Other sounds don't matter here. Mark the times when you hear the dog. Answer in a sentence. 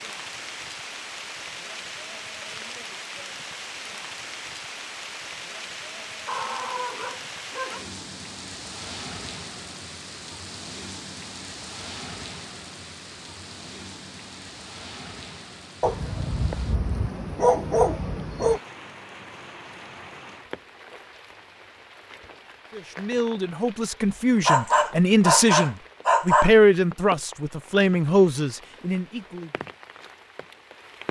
You can hear the dog from 6.2 to 7.8 s, from 15.8 to 18.6 s and from 24.4 to 26.5 s.